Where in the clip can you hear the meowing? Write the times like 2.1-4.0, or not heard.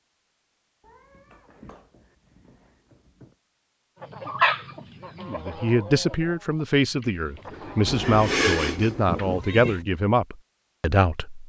0.8-3.4, 8.0-9.8.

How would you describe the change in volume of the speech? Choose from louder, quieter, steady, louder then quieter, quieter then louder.
steady.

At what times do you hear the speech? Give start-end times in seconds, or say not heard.
5.2-11.4.